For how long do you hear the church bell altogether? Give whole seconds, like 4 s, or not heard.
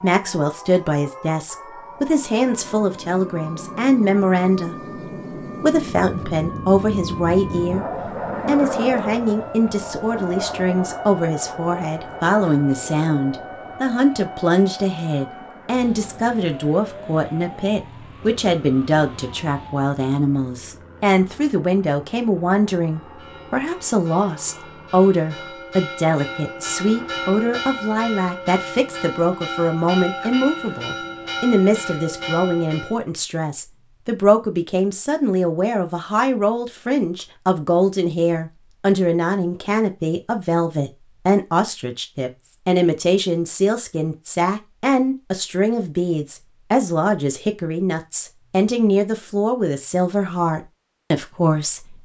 10 s.